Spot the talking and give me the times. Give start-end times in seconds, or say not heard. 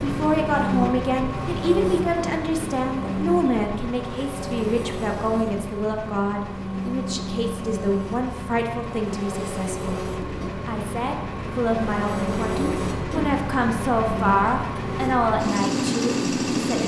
0.0-16.8.